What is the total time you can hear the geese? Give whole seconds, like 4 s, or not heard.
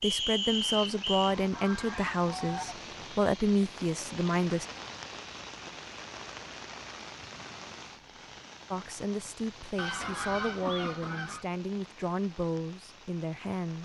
4 s.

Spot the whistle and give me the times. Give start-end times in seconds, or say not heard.
0.0-1.4.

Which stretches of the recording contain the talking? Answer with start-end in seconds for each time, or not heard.
0.0-4.7, 8.7-13.8.